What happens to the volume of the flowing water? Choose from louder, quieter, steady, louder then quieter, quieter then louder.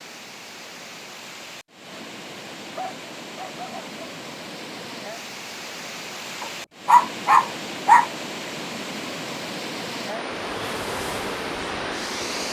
louder.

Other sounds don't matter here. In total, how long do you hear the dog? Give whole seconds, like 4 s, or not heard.
3 s.